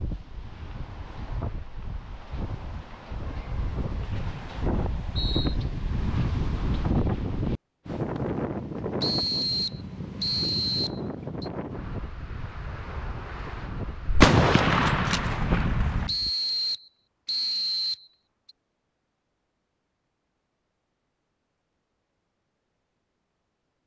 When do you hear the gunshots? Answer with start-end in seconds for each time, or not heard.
14.1-16.1.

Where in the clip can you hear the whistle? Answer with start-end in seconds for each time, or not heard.
4.1-5.5, 9.0-11.5, 16.1-18.5.